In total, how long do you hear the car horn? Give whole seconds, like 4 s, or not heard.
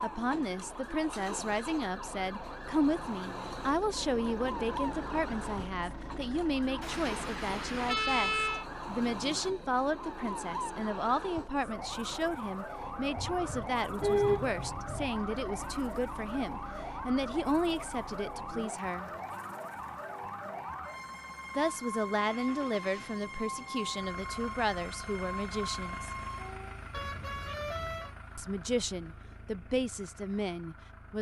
5 s.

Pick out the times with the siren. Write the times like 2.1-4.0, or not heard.
0.0-26.9.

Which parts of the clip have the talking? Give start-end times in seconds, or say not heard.
0.0-19.1, 21.6-26.1, 28.4-31.1.